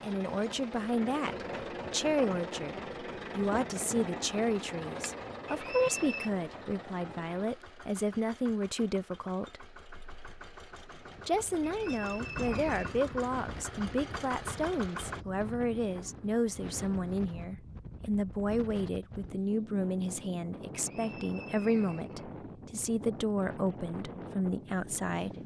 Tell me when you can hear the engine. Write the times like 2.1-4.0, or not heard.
0.0-15.2.